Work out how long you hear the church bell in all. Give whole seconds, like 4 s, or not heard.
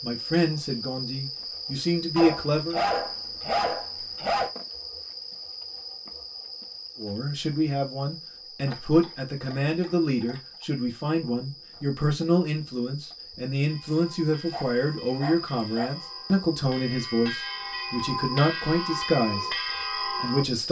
7 s.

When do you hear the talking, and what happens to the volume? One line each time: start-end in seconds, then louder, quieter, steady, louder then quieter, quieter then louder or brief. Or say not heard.
0.0-2.8 brief
7.0-20.6 steady.